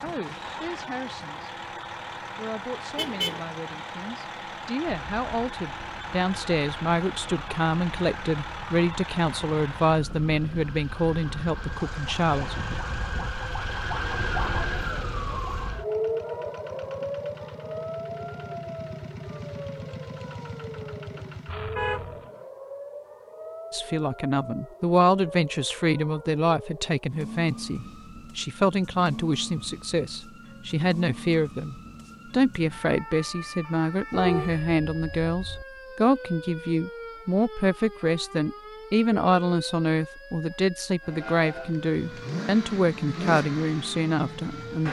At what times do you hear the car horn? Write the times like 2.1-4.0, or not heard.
3.0-3.4, 21.8-22.4, 34.1-35.6.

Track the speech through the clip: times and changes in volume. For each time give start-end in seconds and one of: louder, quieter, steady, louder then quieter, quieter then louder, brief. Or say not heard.
0.0-1.5 brief
2.4-12.6 louder
23.7-44.8 steady.